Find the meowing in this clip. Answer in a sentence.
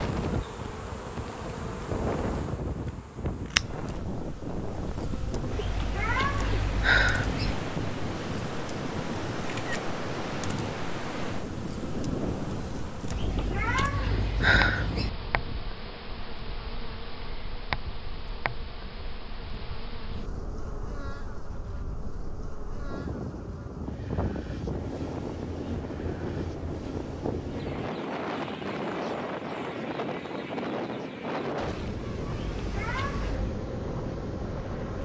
You can hear the meowing from 5.5 to 7.5 s, from 13.1 to 15.1 s and from 32.4 to 33.6 s.